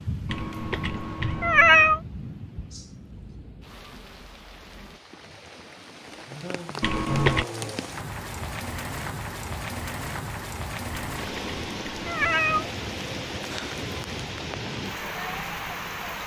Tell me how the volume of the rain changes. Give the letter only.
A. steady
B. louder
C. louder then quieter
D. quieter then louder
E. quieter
D.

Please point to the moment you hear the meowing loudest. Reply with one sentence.
The loudest moment of the meowing is at 2 seconds.